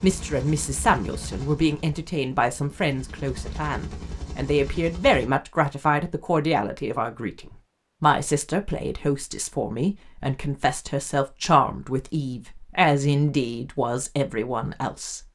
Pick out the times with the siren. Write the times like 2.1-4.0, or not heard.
not heard.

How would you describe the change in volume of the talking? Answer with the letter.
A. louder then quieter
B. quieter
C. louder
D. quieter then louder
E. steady
E.